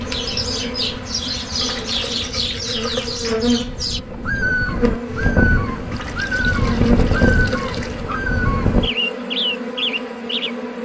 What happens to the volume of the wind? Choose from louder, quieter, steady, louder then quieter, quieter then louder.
louder.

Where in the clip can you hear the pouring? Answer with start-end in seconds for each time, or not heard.
1.6-3.2, 5.9-8.1.